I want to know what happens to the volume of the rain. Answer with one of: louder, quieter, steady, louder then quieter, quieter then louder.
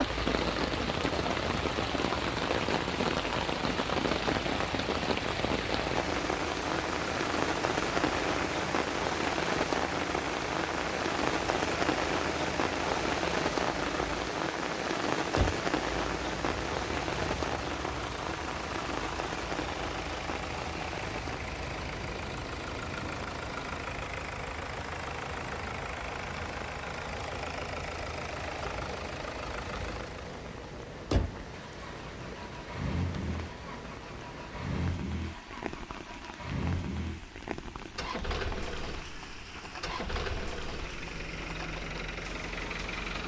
quieter.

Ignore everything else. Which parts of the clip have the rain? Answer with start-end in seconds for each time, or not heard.
0.0-43.2.